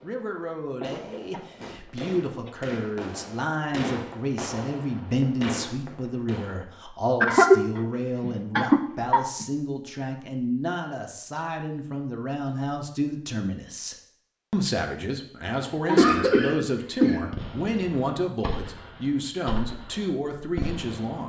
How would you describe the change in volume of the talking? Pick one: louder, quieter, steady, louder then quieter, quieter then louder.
steady.